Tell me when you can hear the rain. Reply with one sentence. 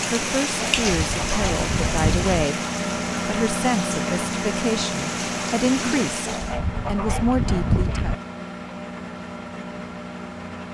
The rain can be heard from 0.0 to 6.6 s.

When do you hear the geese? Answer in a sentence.
The geese can be heard from 0.7 to 2.5 s and from 6.2 to 8.2 s.